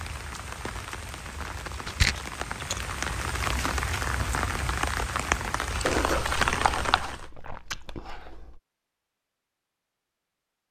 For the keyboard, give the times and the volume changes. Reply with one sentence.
The keyboard can't be heard in this clip.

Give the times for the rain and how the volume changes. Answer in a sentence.
The rain can be heard from 0.0 to 7.2 s, getting louder.